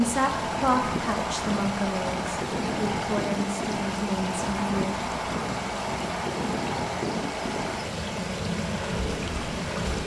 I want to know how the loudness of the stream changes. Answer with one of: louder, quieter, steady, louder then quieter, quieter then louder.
steady.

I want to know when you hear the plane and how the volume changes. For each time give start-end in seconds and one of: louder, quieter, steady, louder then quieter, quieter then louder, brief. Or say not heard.
0.0-10.0 steady.